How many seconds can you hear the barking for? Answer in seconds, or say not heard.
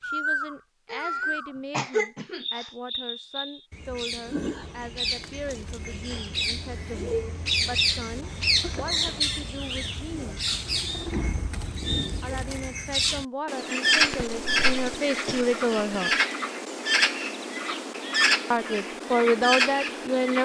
not heard.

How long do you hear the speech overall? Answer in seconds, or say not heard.
16 s.